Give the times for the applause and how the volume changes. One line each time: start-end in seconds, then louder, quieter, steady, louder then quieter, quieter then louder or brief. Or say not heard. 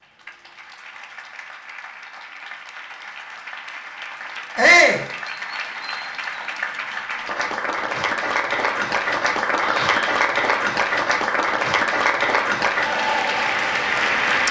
0.0-14.4 louder.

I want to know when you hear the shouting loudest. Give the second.
5 s.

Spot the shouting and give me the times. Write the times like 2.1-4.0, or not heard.
4.5-5.0, 9.6-10.2.